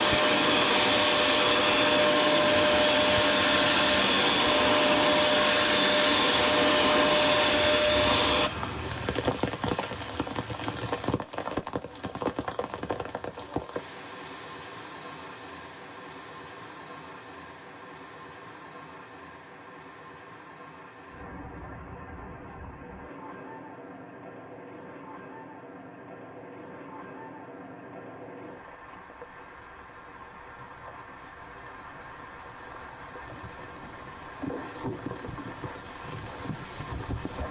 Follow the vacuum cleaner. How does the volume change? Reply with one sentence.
The volume of the vacuum cleaner stays about the same.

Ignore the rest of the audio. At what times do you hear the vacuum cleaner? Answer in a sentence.
You can hear the vacuum cleaner from 0.0 to 8.5 s.